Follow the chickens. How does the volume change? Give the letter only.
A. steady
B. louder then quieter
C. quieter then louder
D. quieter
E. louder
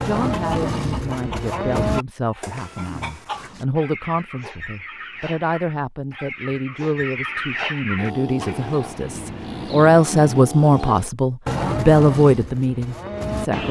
E.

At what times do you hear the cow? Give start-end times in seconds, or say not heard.
0.0-3.5, 8.0-13.6.